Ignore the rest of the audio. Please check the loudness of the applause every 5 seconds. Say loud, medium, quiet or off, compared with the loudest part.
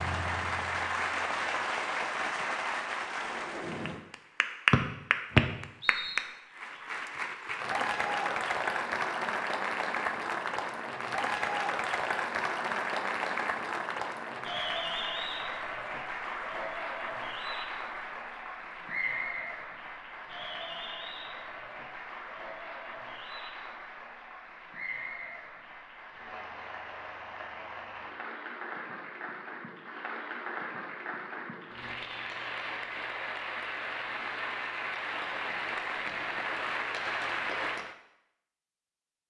loud, loud, loud, medium, medium, medium, medium, loud.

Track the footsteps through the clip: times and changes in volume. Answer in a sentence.
The footsteps can't be heard in this clip.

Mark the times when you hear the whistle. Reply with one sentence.
You can hear the whistle from 4.7 to 6.2 s.